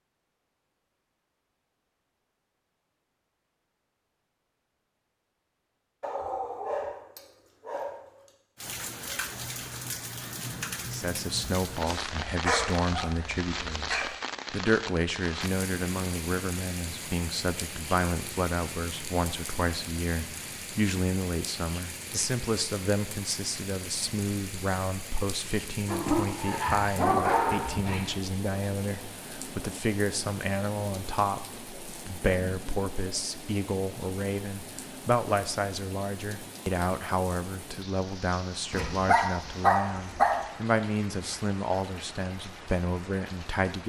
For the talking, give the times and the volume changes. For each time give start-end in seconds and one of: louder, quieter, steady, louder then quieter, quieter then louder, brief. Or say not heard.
10.9-43.8 steady.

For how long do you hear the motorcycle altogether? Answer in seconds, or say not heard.
not heard.